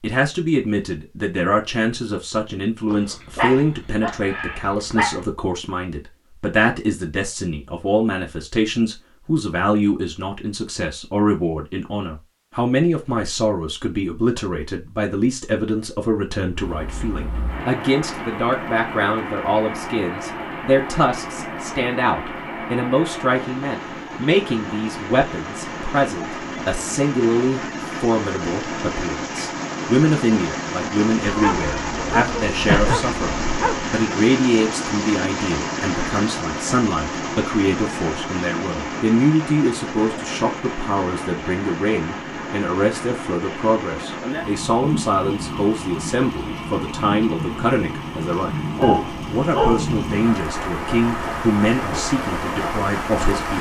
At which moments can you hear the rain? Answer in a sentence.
You can hear the rain from 16.5 to 53.5 s.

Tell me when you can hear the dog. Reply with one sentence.
The dog can be heard from 2.9 to 5.2 s, from 31.2 to 34.0 s and from 48.8 to 50.4 s.